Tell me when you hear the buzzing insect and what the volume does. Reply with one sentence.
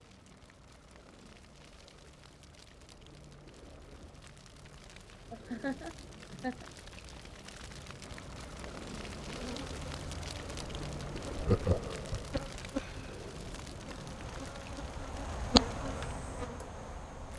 The buzzing insect can be heard from 9.0 to 17.3 s, getting louder.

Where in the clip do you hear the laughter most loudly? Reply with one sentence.
The loudest moment of the laughter is at 12 seconds.